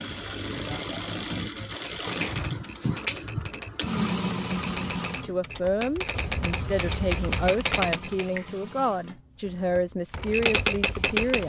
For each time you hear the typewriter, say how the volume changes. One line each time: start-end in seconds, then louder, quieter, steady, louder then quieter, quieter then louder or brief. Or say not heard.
1.8-8.3 louder
9.4-11.4 brief.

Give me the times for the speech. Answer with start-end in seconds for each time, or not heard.
5.2-11.4.